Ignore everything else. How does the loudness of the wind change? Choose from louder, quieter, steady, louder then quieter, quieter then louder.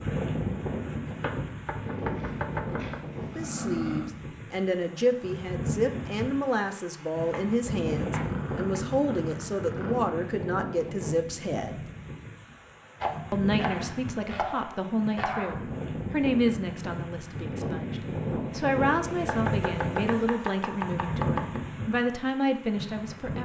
steady.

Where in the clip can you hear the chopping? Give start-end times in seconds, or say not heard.
1.1-3.0, 7.3-8.8, 13.0-15.7, 19.2-21.6.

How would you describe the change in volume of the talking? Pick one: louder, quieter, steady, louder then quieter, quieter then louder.
steady.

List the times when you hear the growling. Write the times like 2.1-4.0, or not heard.
1.9-4.2, 8.2-10.1, 18.9-20.4.